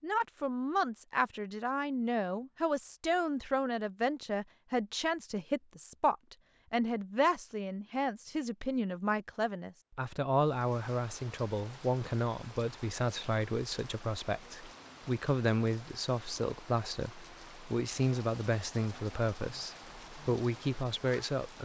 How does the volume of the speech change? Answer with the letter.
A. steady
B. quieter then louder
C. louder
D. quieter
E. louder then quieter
A.